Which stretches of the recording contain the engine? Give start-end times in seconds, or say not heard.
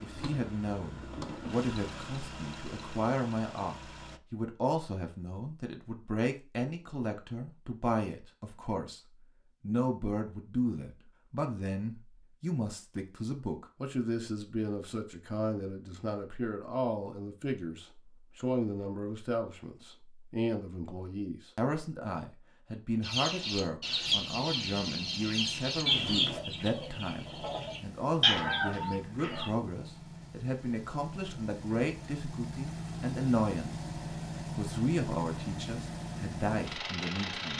0.0-4.2, 24.1-37.5.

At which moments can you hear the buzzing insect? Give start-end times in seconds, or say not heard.
not heard.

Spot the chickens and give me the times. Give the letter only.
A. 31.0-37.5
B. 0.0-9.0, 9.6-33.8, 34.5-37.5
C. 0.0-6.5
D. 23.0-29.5
D.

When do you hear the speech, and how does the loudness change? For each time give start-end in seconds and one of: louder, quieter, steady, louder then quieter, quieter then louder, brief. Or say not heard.
0.0-9.0 steady
9.6-33.8 steady
34.5-37.5 brief.